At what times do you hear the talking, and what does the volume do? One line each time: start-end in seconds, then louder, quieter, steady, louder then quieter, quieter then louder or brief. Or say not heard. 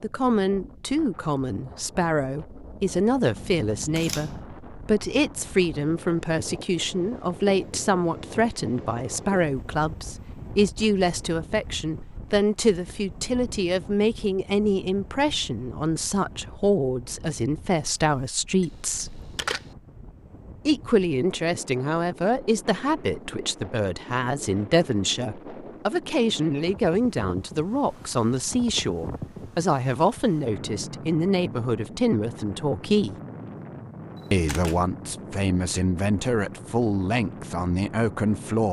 0.0-19.2 steady
20.6-33.1 steady
34.3-38.6 steady.